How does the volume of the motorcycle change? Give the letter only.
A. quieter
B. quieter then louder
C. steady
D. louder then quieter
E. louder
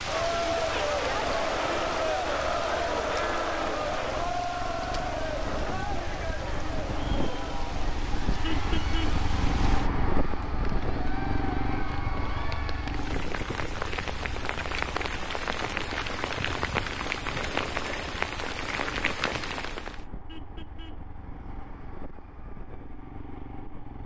D.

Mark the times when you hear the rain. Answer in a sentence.
The rain can be heard from 0.0 to 20.1 s.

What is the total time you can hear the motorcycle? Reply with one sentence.
You can hear the motorcycle for 24 seconds altogether.